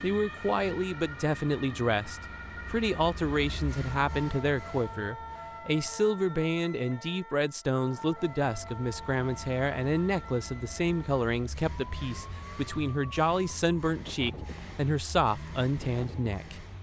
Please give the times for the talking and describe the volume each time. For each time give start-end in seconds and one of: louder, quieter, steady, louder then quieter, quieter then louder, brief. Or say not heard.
0.0-16.6 steady.